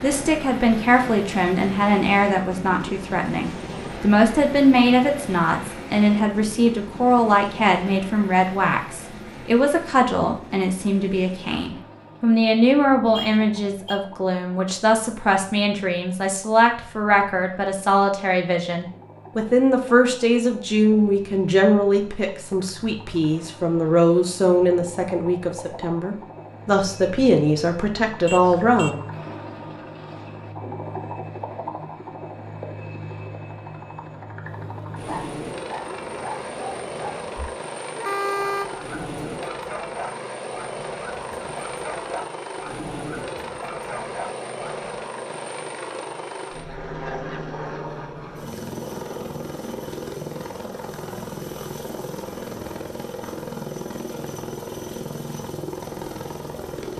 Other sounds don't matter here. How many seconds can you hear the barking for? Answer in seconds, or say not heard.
11 s.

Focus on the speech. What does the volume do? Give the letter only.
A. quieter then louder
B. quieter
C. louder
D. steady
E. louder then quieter
D.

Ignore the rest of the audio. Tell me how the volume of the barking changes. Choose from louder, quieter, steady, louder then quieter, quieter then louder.
steady.